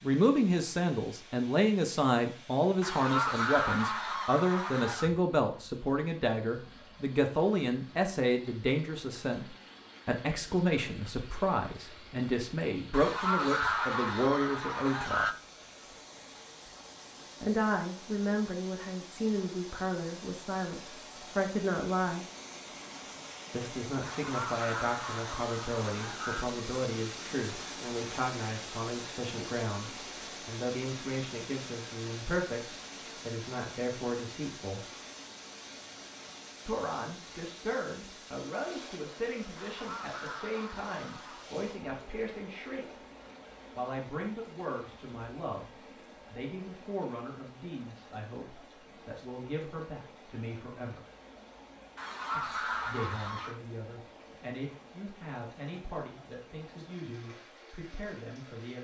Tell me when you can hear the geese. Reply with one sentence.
The geese can be heard from 2.8 to 5.1 s, from 12.9 to 15.3 s, from 24.0 to 26.5 s, from 39.5 to 41.5 s and from 52.0 to 53.6 s.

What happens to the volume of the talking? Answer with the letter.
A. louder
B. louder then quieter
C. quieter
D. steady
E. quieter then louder
C.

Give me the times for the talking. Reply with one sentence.
You can hear the talking from 0.0 to 15.3 s, from 17.4 to 22.2 s, from 23.5 to 34.9 s, from 36.6 to 42.9 s, from 43.8 to 51.0 s and from 52.4 to 58.7 s.